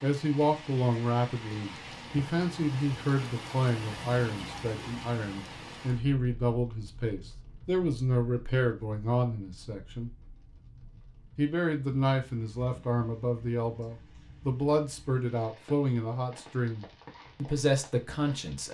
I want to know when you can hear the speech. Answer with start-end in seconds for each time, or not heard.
0.0-10.1, 11.3-18.6.